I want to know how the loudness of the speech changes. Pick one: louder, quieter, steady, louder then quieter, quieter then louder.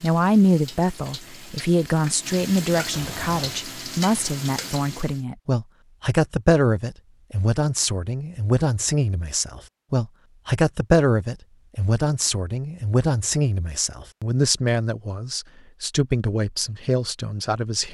steady.